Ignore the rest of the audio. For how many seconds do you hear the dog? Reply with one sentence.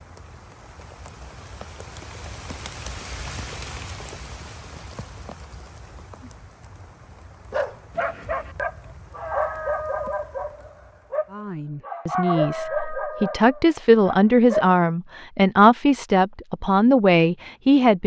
The dog can be heard for 7 seconds in total.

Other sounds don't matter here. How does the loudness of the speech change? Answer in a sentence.
The loudness of the speech goes up.